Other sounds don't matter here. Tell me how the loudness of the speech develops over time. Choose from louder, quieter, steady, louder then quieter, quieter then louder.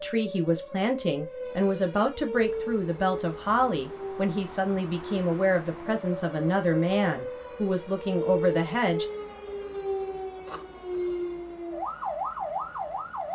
steady.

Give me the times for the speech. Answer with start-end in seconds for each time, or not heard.
0.0-9.1.